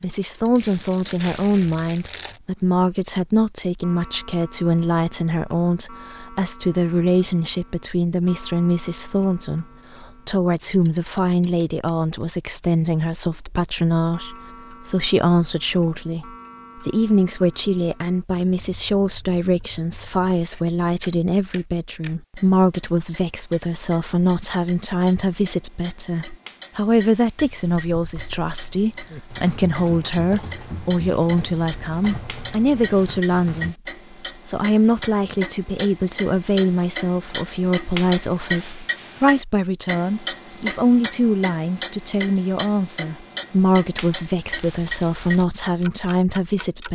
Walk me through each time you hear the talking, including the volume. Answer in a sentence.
You can hear the talking from 0.0 to 33.8 s, at a steady volume; and from 34.5 to 46.9 s, at a steady volume.